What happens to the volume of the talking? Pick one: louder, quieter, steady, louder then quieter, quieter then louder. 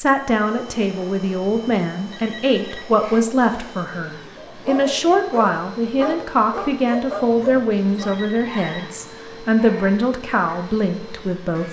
steady.